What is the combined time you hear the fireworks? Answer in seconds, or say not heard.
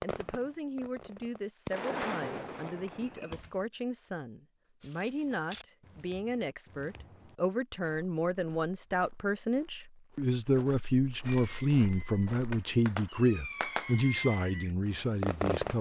8 s.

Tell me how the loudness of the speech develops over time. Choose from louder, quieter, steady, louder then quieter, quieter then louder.
louder.